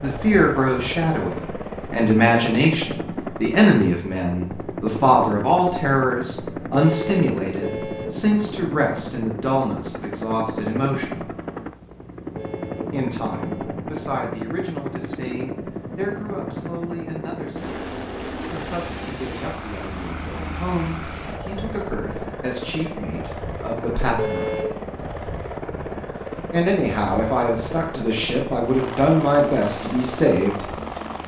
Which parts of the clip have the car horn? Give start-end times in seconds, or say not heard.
6.8-8.1, 12.3-13.7, 24.1-24.9.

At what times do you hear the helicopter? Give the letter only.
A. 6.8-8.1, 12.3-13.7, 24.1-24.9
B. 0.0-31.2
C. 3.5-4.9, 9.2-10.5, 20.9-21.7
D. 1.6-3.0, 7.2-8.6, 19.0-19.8
B.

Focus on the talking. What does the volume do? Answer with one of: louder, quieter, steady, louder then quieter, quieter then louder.
quieter then louder.